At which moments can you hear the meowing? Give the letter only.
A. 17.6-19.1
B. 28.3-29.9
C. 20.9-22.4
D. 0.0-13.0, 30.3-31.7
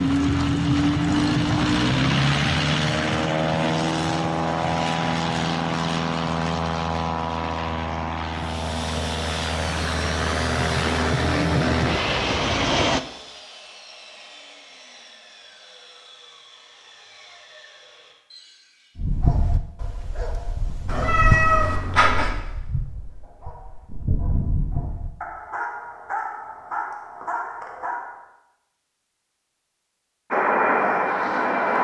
C.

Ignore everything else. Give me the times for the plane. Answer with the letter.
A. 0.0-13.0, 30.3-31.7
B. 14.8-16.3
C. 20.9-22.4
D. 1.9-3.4
A.